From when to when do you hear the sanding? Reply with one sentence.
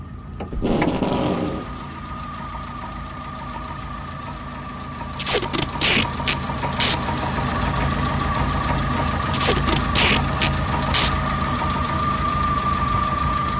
The sanding can't be heard in this clip.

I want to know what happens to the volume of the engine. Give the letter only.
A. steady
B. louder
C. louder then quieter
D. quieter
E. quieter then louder
B.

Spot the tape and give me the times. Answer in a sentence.
The tape can be heard from 0.5 to 1.6 s, from 5.2 to 7.0 s and from 9.3 to 11.1 s.